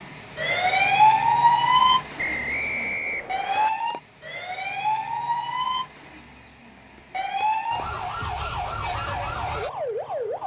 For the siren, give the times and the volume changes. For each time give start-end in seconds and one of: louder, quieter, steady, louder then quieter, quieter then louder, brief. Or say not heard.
0.0-10.4 quieter.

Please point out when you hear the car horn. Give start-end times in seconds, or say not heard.
not heard.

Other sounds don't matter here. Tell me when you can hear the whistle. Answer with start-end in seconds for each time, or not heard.
2.1-3.7.